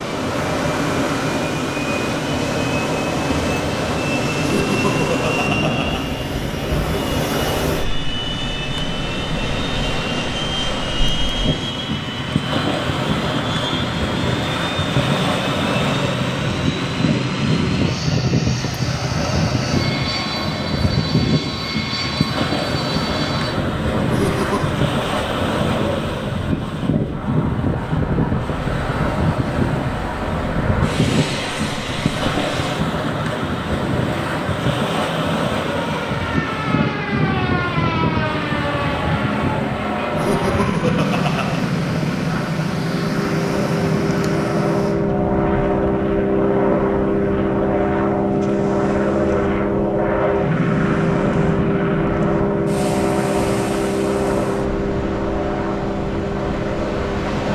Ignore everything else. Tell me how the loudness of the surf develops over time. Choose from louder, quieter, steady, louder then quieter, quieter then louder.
quieter.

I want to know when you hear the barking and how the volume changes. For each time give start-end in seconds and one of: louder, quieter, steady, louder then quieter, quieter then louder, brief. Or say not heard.
not heard.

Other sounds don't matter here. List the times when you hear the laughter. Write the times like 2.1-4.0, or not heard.
4.3-6.1, 24.1-24.8, 40.1-41.6.